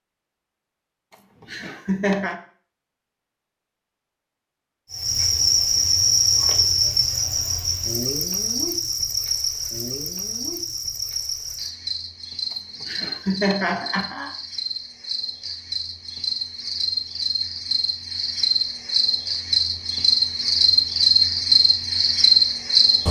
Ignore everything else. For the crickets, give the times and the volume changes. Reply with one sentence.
The crickets can be heard from 4.9 to 23.0 s, getting quieter then louder.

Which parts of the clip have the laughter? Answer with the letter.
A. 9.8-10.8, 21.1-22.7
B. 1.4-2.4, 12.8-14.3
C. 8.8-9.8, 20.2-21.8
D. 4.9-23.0
B.